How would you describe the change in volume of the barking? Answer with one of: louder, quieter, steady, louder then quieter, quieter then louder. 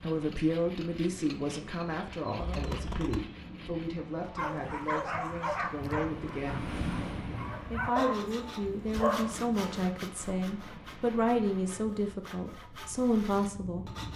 quieter then louder.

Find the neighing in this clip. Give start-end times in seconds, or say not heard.
2.4-3.3.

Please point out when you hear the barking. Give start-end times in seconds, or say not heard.
4.3-9.8.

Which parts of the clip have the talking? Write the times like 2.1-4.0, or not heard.
0.0-6.8, 7.7-13.9.